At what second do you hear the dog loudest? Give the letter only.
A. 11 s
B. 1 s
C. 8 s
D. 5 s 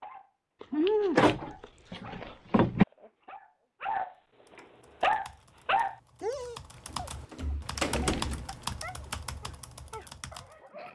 D.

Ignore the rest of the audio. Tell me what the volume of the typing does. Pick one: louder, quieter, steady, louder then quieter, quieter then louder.
louder then quieter.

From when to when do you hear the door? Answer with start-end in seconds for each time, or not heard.
0.8-2.9, 6.9-8.6.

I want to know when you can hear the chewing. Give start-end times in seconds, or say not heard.
0.6-2.1, 7.7-8.2.